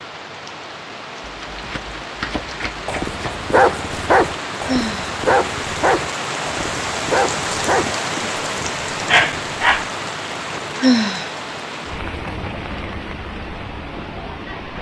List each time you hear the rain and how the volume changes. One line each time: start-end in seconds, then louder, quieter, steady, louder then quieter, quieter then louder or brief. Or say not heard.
0.0-14.7 louder then quieter.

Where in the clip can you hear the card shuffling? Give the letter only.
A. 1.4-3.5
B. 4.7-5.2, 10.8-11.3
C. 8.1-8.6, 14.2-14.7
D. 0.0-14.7
A.